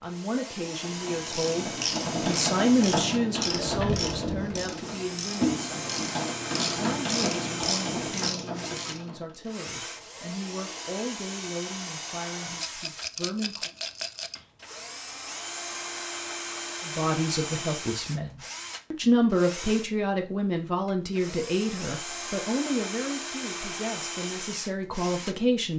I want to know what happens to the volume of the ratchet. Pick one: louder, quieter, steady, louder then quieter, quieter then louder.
steady.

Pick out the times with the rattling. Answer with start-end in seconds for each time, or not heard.
12.6-14.4.